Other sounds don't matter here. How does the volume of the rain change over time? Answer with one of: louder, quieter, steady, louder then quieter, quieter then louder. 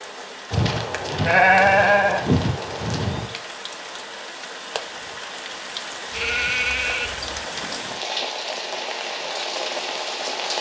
louder.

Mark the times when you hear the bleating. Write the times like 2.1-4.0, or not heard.
0.5-3.3, 6.1-7.4.